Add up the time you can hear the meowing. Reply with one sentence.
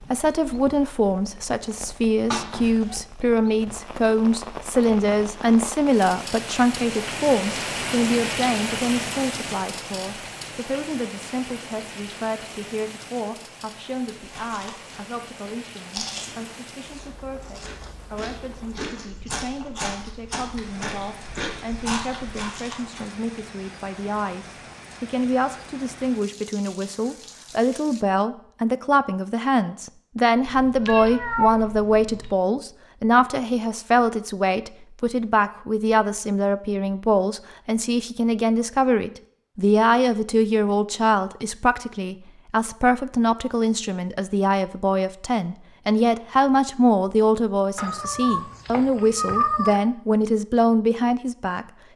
The meowing can be heard for 5 seconds in total.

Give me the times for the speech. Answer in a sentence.
The speech can be heard from 0.0 to 51.6 s.